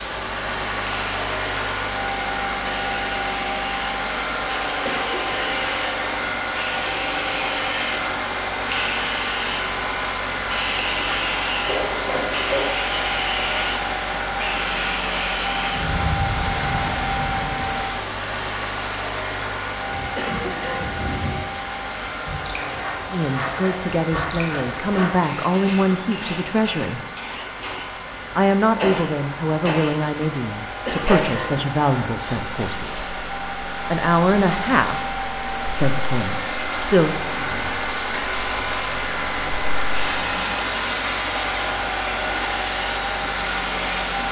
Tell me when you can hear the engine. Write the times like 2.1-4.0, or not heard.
0.0-44.2.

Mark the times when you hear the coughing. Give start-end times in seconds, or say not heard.
4.8-5.5, 20.1-21.0, 30.9-31.7.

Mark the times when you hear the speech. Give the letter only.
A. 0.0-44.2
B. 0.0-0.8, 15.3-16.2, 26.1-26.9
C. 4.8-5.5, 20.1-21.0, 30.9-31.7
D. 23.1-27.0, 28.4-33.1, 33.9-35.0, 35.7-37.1
D.